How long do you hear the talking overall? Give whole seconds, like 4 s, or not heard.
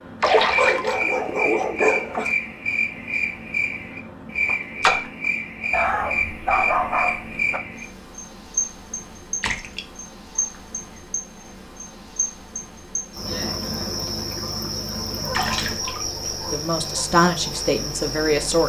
2 s.